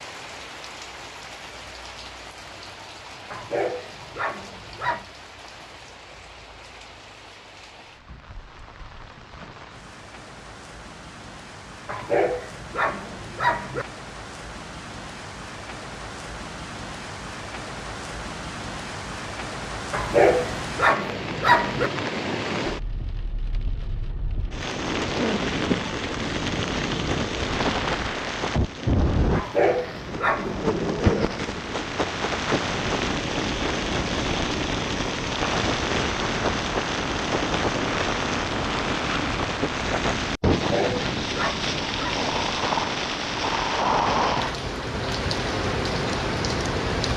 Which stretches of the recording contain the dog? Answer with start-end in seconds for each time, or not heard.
3.3-5.0, 11.8-13.8, 19.9-21.9, 29.3-30.6, 40.5-42.1.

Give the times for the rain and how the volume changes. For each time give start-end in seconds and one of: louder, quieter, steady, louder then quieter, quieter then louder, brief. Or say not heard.
0.0-47.1 louder.